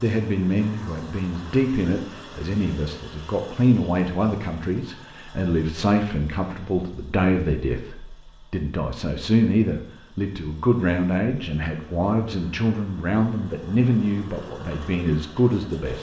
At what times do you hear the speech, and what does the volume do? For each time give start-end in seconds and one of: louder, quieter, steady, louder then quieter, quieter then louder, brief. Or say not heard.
0.0-15.9 steady.